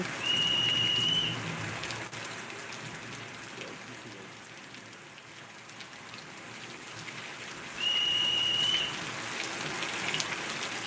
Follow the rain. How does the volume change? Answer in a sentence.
The volume of the rain goes down, then up.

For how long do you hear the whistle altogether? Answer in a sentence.
The whistle can be heard for 2 seconds in total.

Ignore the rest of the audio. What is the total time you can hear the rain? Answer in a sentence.
You can hear the rain for 11 seconds altogether.